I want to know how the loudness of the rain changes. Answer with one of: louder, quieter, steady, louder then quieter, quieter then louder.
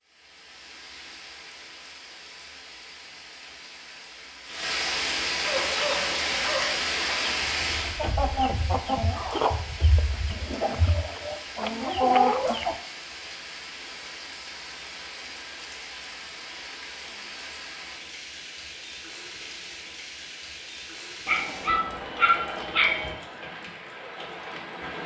louder then quieter.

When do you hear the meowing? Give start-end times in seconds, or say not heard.
not heard.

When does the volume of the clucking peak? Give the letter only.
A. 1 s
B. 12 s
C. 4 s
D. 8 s
B.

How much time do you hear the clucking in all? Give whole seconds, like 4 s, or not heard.
7 s.